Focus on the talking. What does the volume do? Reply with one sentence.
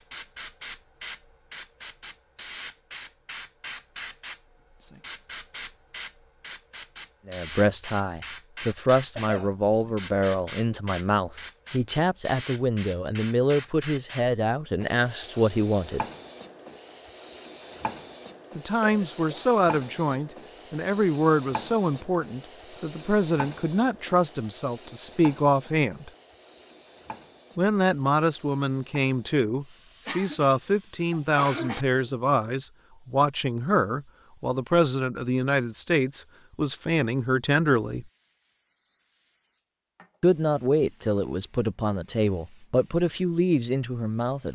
The volume of the talking stays about the same.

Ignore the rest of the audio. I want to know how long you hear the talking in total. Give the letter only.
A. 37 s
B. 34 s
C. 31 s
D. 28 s
C.